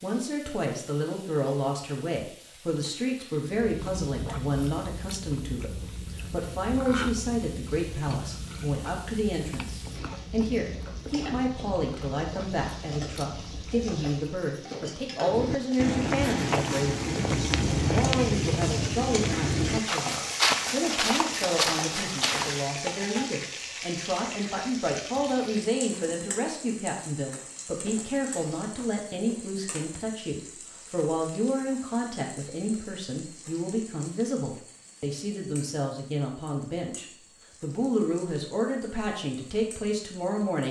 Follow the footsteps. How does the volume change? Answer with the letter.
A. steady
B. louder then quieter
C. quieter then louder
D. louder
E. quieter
A.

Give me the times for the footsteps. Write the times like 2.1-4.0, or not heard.
15.2-22.7.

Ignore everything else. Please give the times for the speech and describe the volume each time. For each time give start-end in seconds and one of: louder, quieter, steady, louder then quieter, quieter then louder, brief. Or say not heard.
0.0-40.6 steady.